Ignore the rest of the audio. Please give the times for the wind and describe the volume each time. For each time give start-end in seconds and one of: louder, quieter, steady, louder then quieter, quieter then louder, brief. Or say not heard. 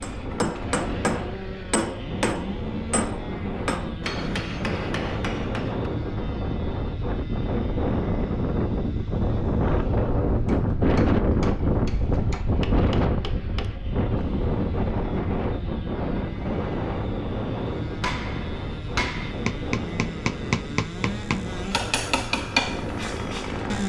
0.0-23.8 louder then quieter.